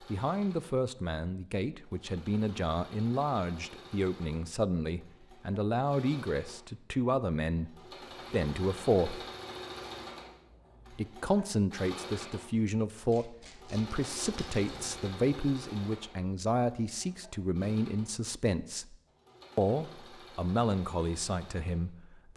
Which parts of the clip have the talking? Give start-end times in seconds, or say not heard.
0.1-9.2, 10.9-18.9, 19.6-22.3.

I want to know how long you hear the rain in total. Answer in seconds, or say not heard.
not heard.